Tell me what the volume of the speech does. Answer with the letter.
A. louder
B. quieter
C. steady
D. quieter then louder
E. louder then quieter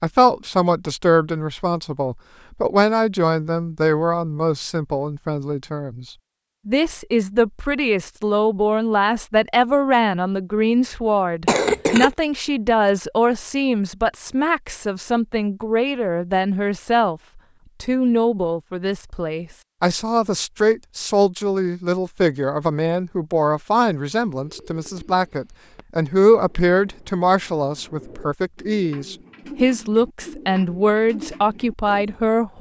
C.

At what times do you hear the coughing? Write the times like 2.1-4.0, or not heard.
11.4-12.1.